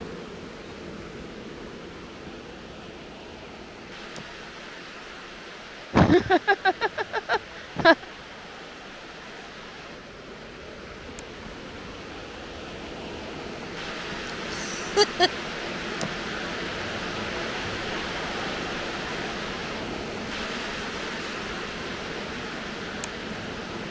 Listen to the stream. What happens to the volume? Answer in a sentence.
The volume of the stream goes up.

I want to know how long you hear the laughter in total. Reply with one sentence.
The laughter can be heard for 3 seconds in total.